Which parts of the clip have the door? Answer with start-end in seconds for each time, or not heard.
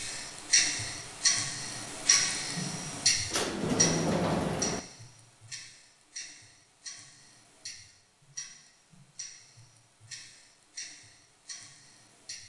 3.3-4.8.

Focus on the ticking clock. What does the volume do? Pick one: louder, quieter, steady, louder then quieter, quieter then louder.
quieter.